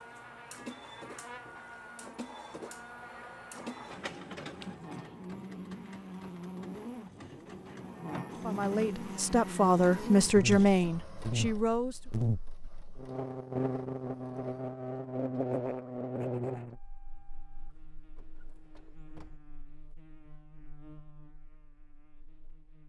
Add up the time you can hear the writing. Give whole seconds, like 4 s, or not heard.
not heard.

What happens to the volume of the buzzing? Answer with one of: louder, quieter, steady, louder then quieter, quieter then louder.
louder then quieter.